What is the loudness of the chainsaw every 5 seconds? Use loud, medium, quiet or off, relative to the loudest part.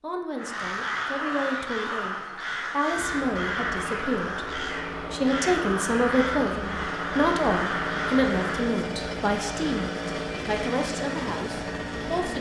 medium, loud, loud.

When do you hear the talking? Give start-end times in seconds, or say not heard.
0.0-12.3.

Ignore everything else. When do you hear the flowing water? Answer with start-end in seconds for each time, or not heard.
not heard.